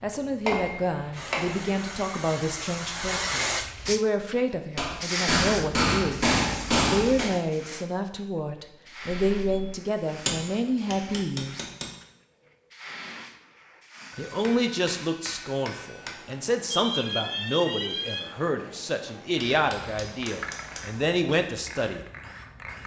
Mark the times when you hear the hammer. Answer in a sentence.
The hammer can be heard from 0.5 to 1.7 s, from 4.8 to 7.3 s, from 10.2 to 11.9 s, from 14.1 to 16.1 s and from 19.5 to 21.1 s.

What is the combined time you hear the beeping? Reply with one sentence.
You can hear the beeping for 2 seconds altogether.